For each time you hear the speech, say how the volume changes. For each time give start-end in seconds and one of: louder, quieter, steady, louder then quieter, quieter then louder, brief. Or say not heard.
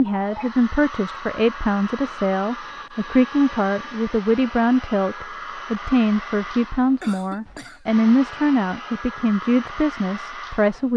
0.0-10.9 steady.